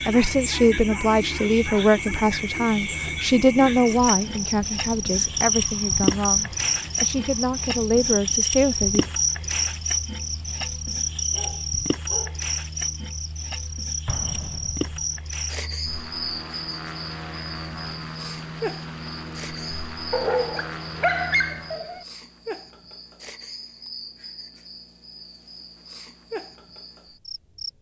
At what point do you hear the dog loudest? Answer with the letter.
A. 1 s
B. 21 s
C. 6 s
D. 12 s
B.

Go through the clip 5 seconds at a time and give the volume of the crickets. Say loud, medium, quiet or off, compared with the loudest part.
medium, loud, medium, medium, quiet, quiet.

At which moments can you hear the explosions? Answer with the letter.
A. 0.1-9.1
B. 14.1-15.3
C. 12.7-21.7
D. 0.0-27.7
B.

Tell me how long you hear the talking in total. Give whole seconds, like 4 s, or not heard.
9 s.